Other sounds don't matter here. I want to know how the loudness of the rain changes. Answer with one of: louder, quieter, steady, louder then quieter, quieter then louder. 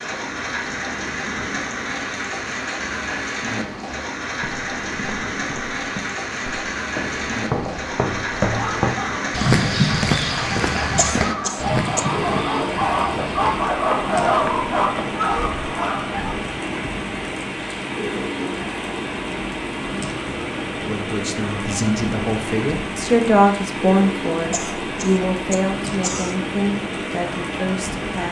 steady.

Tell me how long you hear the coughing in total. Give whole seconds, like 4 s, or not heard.
3 s.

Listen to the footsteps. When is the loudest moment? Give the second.
10 s.